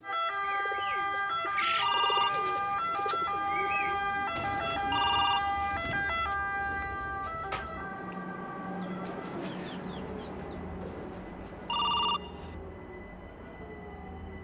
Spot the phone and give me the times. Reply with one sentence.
You can hear the phone from 1.8 to 2.7 s, from 4.9 to 5.8 s and from 11.7 to 12.6 s.